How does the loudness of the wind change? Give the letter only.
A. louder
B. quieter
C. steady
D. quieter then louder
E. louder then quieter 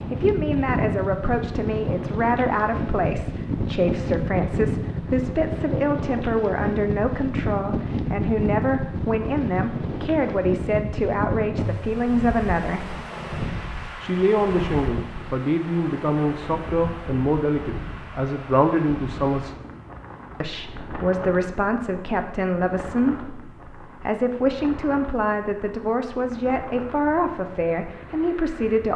B.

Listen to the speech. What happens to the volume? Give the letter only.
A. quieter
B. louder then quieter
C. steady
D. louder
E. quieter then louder
C.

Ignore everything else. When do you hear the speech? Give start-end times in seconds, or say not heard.
0.1-12.9, 14.0-19.6, 20.4-28.9.